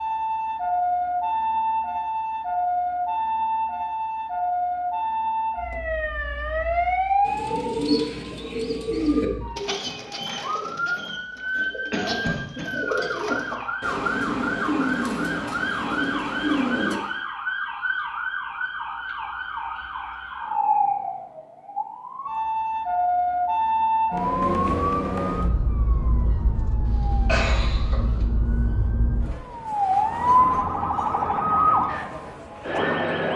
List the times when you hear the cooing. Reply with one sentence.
The cooing can be heard from 7.2 to 17.0 s.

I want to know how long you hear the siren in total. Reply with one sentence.
You can hear the siren for 33 seconds altogether.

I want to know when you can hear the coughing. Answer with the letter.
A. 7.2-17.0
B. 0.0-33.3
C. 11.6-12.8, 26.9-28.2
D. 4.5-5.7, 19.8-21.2
C.